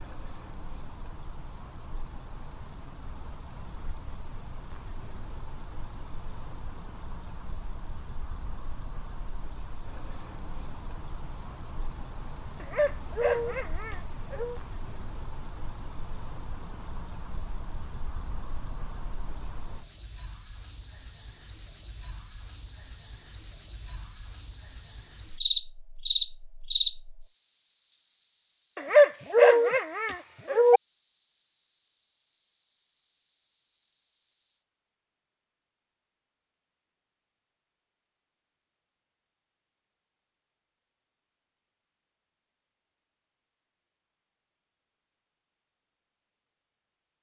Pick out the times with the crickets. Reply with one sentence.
You can hear the crickets from 0.0 to 34.6 s.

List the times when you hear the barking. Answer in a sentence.
The barking can be heard from 12.6 to 14.6 s and from 28.8 to 30.8 s.